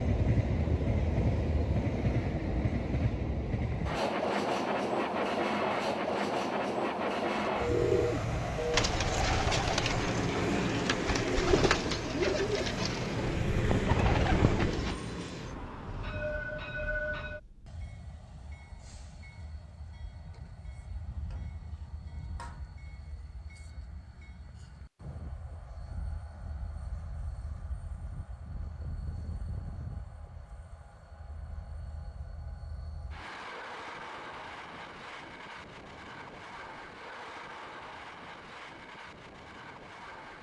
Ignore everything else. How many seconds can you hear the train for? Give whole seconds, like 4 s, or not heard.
40 s.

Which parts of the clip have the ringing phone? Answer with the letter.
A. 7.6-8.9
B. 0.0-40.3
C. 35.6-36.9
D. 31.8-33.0
A.